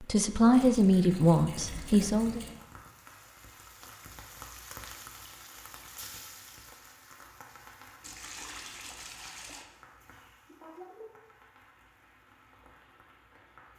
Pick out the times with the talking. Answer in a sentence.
The talking can be heard from 0.0 to 2.5 s.